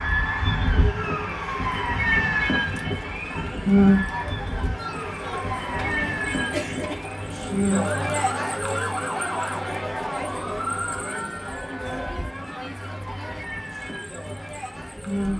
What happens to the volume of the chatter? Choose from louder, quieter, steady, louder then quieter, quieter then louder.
louder then quieter.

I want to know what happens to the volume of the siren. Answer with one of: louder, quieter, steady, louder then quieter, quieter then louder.
quieter.